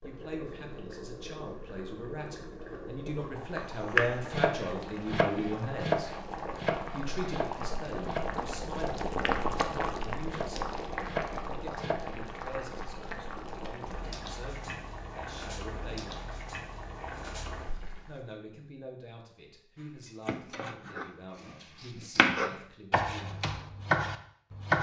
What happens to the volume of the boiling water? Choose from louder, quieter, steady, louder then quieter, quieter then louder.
louder then quieter.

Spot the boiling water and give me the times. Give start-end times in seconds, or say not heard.
0.0-18.2.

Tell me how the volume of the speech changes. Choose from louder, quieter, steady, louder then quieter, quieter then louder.
quieter.